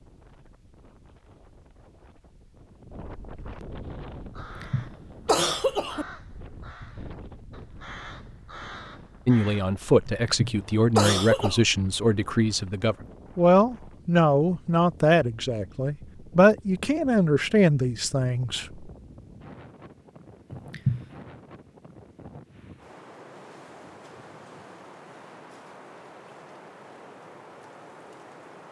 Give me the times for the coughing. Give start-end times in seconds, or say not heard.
4.4-6.0, 10.1-11.6, 20.5-21.1.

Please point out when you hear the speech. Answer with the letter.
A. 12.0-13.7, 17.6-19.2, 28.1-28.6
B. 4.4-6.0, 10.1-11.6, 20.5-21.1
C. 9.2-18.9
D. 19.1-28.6
C.